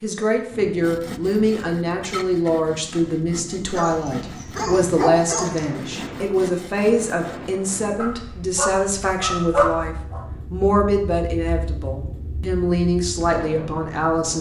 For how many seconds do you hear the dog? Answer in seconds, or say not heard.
4 s.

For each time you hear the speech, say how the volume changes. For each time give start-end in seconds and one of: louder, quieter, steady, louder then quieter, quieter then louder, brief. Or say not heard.
0.0-14.3 steady.